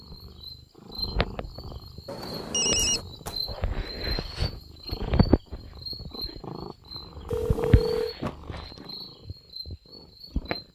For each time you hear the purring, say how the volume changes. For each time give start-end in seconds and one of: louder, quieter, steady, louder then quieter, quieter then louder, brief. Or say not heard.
0.1-10.6 louder then quieter.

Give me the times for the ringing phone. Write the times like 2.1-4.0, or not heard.
2.0-3.0, 7.3-8.2.